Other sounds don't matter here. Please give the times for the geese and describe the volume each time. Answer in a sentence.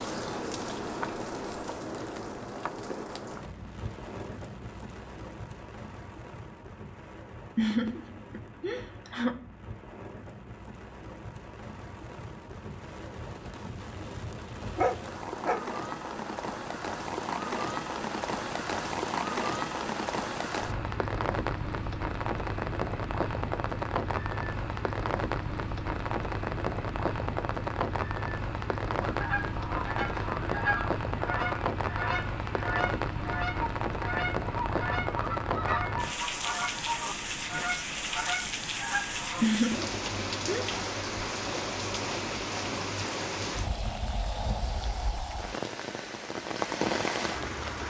You can hear the geese from 29.0 to 39.5 s, at a steady volume.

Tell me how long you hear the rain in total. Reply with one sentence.
You can hear the rain for 48 seconds altogether.